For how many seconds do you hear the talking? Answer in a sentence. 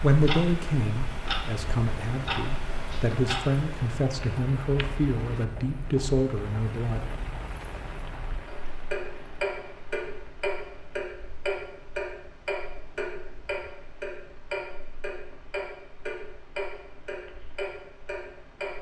The talking can be heard for 7 seconds in total.